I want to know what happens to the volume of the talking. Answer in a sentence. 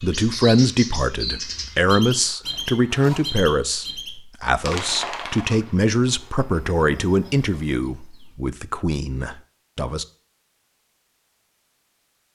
The volume of the talking goes down.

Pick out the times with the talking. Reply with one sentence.
The talking can be heard from 0.0 to 10.1 s.